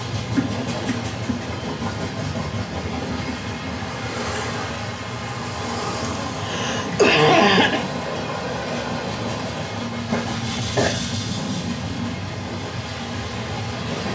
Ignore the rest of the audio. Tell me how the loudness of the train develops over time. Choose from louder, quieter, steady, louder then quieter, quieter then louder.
steady.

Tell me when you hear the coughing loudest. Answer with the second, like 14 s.
7 s.